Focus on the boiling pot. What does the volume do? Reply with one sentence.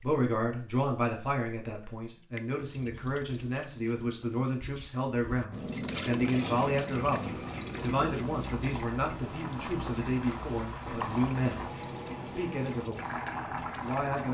The volume of the boiling pot goes up.